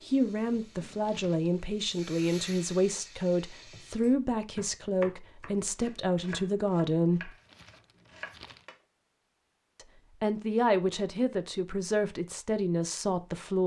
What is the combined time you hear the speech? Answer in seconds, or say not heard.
11 s.